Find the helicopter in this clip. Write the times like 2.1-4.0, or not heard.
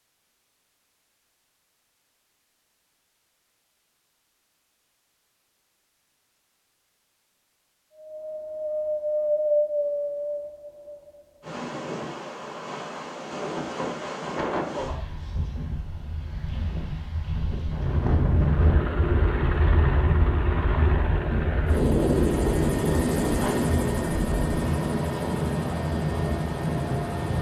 18.3-27.3.